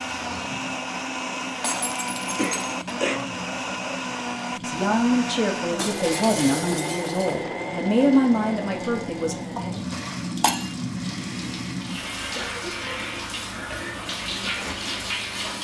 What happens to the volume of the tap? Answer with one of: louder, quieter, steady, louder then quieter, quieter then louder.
louder.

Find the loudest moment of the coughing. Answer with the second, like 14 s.
3 s.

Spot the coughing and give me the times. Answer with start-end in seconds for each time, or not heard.
2.4-3.2, 12.3-13.2.